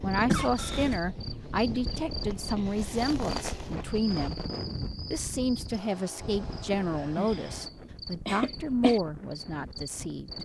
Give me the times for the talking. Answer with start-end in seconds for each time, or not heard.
0.0-4.4, 5.1-10.3.